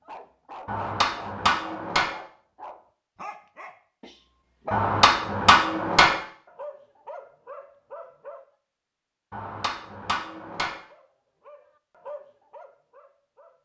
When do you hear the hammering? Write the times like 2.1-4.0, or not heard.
0.7-2.1, 4.7-6.2, 9.3-10.8.